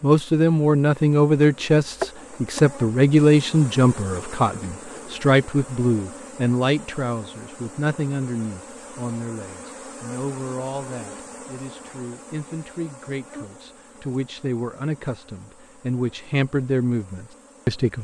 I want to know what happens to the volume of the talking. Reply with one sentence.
The loudness of the talking goes down, then up.